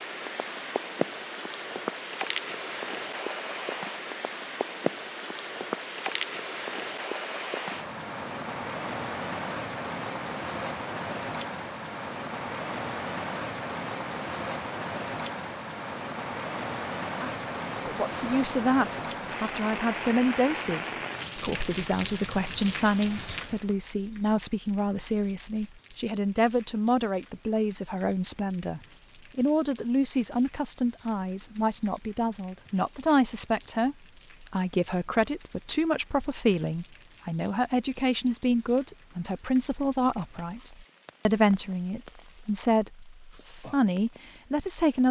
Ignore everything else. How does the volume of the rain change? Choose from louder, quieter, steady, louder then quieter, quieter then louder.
quieter.